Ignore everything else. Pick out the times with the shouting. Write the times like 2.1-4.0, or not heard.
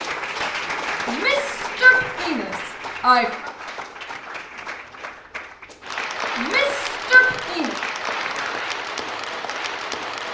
1.1-3.5, 6.3-7.8.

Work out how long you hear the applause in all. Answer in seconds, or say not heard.
10 s.